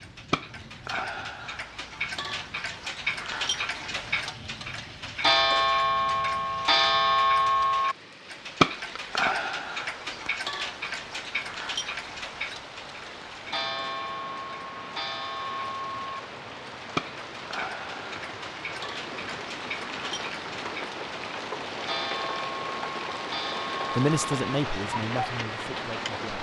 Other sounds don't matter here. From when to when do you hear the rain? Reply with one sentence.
The rain can be heard from 0.0 to 26.3 s.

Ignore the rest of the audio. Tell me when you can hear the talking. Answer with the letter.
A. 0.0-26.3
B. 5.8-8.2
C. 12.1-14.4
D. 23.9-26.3
D.